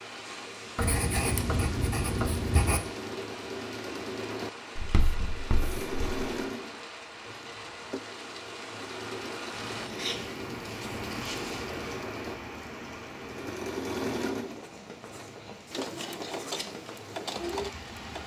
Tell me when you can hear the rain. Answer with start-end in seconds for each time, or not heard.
0.0-18.2.